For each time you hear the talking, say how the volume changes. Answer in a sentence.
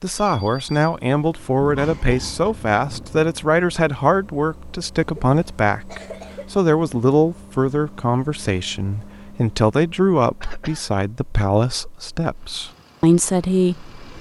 You can hear the talking from 0.0 to 13.9 s, at a steady volume.